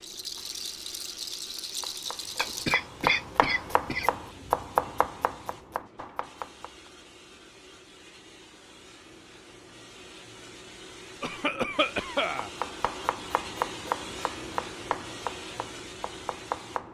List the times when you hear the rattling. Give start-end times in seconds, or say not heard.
0.0-2.8.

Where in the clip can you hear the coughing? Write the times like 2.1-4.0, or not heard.
2.4-4.1, 11.2-12.5.